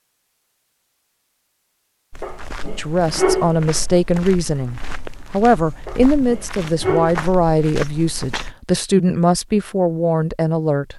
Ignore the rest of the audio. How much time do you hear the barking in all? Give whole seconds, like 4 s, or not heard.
3 s.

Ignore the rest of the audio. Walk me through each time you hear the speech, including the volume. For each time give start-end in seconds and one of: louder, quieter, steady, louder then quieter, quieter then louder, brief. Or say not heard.
2.8-10.9 steady.